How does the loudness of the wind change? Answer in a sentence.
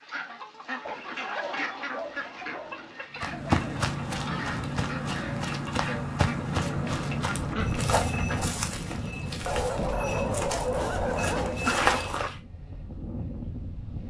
The loudness of the wind goes down.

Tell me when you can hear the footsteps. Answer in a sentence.
The footsteps can be heard from 3.1 to 12.4 s.